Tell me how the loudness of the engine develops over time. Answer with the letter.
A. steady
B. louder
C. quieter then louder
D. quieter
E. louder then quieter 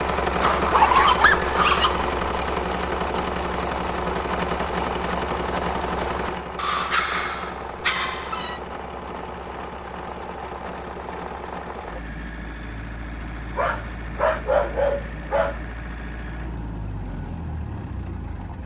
D.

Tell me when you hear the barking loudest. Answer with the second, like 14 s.
1 s.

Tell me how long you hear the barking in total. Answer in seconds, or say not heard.
6 s.